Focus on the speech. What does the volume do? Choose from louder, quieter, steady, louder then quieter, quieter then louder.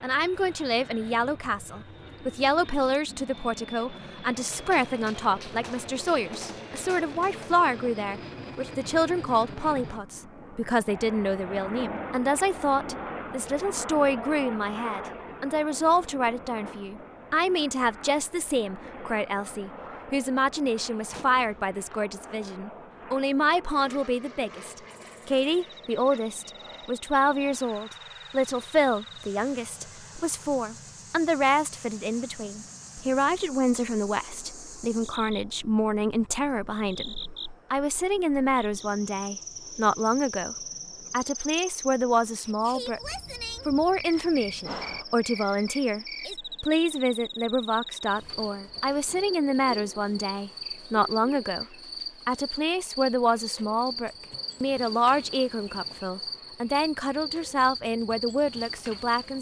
steady.